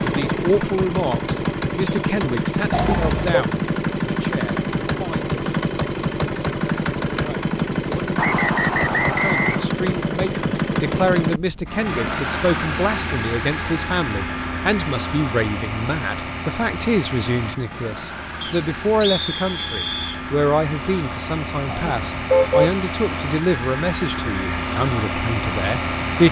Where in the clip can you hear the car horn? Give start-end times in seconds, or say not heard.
2.7-3.5, 21.6-22.7.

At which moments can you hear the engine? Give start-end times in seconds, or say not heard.
0.0-26.2.